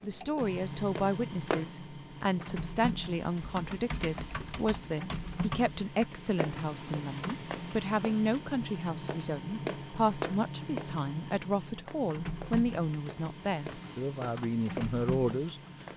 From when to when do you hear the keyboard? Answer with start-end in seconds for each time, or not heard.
3.4-6.0.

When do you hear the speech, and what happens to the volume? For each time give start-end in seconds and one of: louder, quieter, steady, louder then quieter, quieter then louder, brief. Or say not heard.
0.0-15.6 steady.